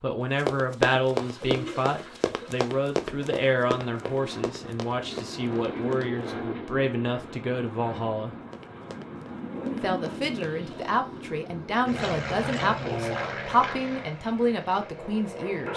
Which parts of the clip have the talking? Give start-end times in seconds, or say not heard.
0.0-8.3, 9.7-15.7.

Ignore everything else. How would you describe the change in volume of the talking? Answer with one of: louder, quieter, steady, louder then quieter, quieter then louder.
steady.